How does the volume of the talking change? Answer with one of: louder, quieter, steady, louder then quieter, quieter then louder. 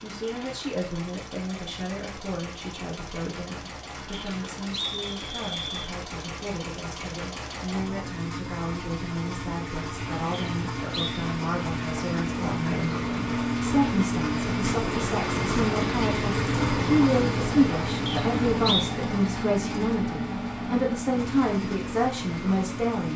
louder.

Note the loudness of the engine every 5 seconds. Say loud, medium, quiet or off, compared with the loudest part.
quiet, medium, loud, loud, medium.